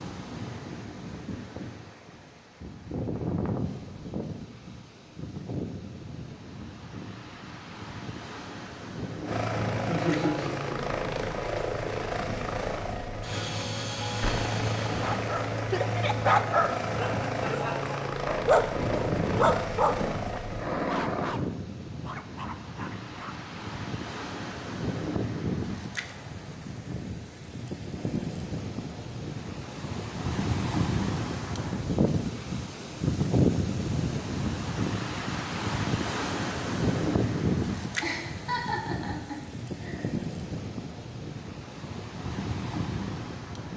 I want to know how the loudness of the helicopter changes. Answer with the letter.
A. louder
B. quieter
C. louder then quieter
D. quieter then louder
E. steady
E.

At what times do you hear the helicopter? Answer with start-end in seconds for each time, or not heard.
9.2-21.4.